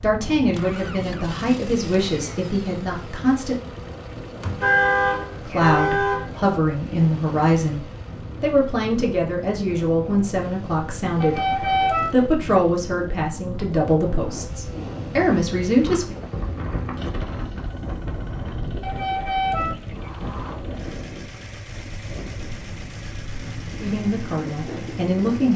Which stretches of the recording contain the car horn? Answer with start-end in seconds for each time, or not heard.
4.4-6.2, 11.2-12.2, 18.8-20.6.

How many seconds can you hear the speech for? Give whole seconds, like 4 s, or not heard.
16 s.